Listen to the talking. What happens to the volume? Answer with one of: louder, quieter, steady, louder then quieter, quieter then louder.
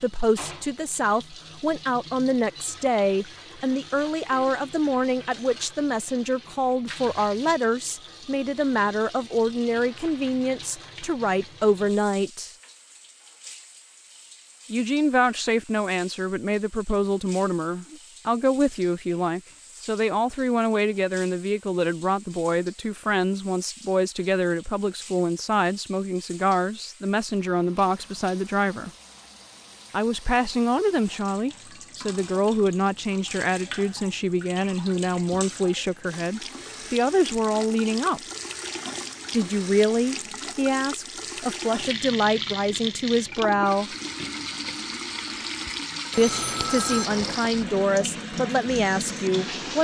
steady.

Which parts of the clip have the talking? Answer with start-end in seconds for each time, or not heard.
0.0-12.5, 14.7-28.9, 29.9-38.2, 39.3-44.0, 46.1-49.7.